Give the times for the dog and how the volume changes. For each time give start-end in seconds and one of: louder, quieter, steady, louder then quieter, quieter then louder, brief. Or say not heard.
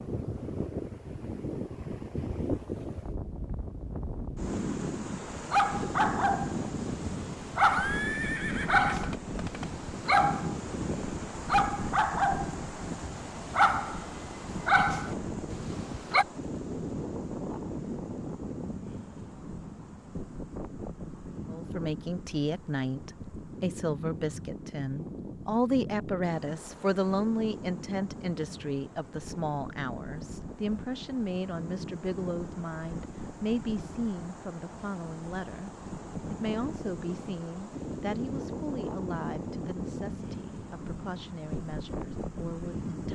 5.3-16.2 steady.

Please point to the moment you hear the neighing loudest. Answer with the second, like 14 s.
8 s.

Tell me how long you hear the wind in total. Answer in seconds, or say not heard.
43 s.